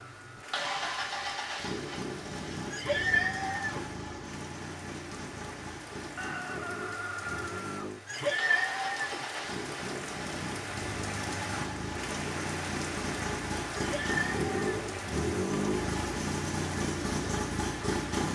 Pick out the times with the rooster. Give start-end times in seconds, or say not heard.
6.2-7.9.